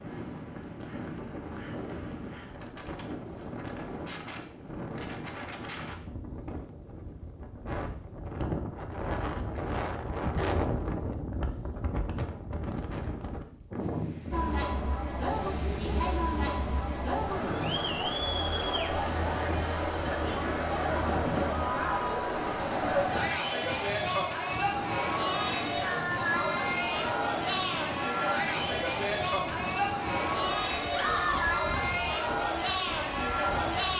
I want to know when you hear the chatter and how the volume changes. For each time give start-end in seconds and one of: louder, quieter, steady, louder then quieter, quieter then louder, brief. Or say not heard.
14.3-33.9 steady.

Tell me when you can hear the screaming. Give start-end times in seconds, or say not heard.
30.9-31.6.